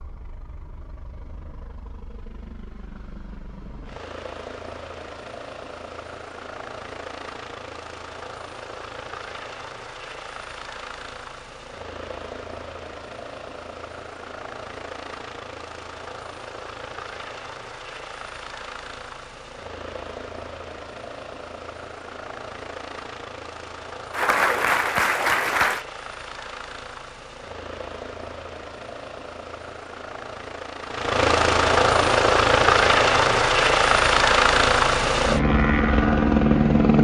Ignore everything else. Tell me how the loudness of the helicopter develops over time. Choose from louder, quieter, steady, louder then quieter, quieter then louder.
louder.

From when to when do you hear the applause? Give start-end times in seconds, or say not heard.
24.1-25.9.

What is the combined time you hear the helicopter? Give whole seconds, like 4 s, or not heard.
37 s.